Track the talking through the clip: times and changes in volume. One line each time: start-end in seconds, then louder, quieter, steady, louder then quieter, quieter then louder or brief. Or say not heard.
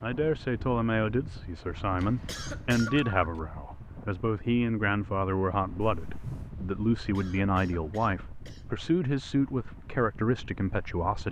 0.0-11.2 steady.